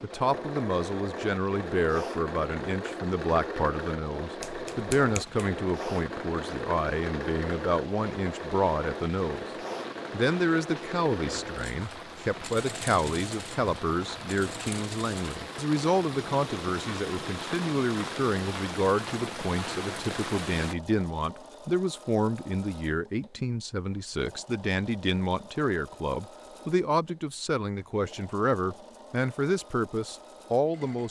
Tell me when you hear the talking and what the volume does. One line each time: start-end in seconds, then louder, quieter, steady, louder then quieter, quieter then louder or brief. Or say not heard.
0.0-9.4 steady
10.1-31.0 steady.